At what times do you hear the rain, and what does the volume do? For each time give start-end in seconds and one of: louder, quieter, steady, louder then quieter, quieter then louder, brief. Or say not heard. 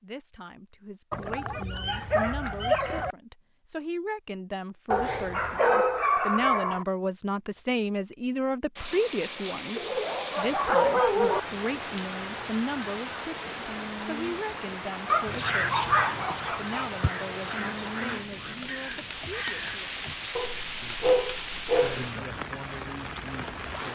8.8-23.8 steady.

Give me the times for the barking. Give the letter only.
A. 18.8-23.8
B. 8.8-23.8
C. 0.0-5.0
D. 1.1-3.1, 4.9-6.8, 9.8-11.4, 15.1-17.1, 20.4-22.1
D.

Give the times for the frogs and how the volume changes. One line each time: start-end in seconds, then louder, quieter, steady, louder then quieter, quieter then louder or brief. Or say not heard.
not heard.